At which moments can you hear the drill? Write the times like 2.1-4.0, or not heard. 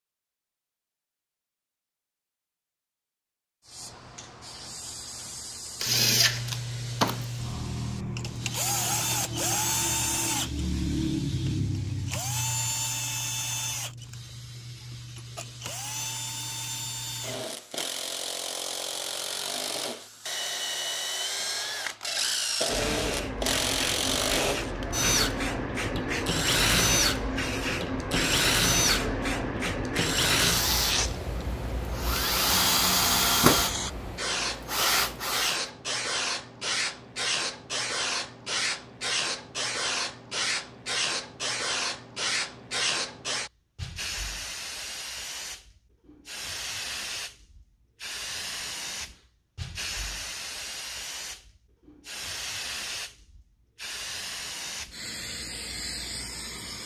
5.8-35.6.